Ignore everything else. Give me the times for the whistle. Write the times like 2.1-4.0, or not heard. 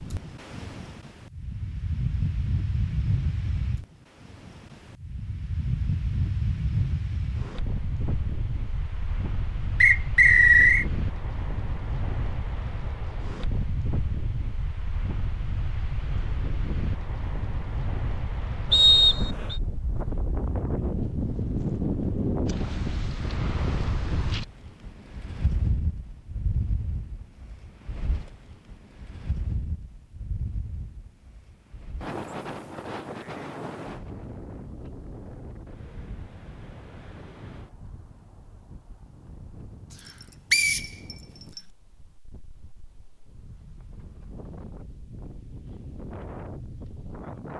9.8-10.8, 18.7-19.6, 40.5-41.6.